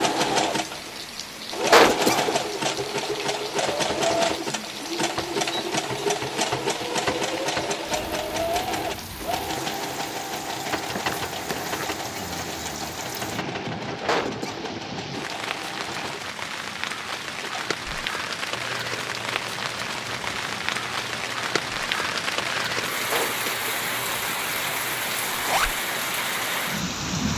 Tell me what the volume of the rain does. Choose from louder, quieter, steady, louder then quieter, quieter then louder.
louder.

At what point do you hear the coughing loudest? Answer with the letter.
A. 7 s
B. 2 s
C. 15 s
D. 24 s
B.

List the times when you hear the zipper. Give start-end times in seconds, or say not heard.
10.9-11.9, 25.3-25.8.